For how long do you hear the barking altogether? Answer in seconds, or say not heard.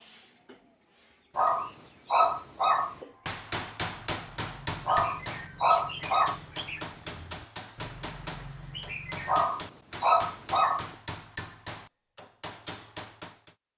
5 s.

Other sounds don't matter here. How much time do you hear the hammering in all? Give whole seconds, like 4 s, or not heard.
10 s.